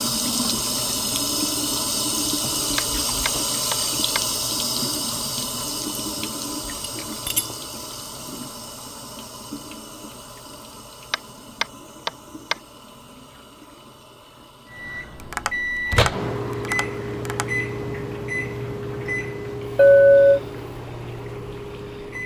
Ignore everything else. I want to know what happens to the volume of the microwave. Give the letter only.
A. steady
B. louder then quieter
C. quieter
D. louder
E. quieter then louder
C.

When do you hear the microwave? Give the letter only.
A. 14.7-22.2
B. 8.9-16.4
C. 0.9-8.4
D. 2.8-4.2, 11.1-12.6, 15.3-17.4
A.